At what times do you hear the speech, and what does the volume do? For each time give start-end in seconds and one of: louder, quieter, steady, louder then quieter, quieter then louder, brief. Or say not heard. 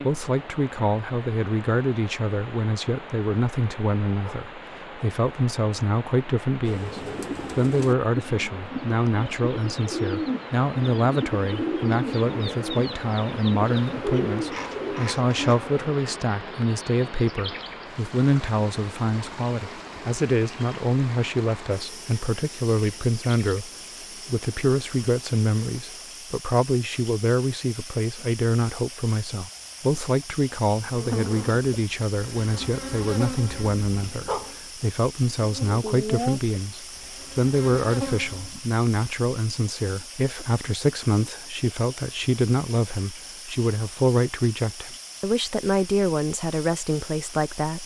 0.0-47.8 steady.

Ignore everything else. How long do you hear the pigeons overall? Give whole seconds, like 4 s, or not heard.
9 s.